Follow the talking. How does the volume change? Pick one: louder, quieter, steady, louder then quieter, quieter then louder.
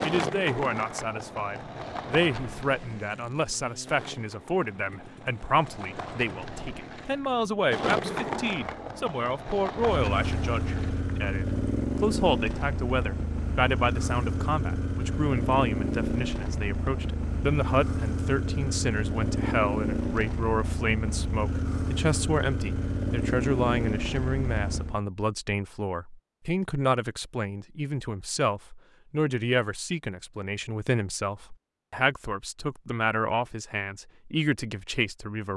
steady.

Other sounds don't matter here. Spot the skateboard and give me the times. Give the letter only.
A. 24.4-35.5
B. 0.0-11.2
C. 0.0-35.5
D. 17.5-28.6
B.